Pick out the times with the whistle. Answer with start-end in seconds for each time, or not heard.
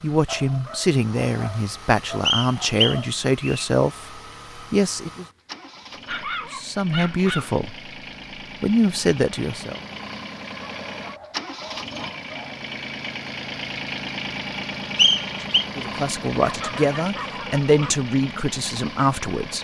2.2-3.6, 14.9-15.7.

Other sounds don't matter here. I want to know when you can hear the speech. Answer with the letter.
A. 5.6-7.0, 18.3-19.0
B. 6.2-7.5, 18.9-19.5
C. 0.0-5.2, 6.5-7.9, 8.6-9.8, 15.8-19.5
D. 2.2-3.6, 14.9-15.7
C.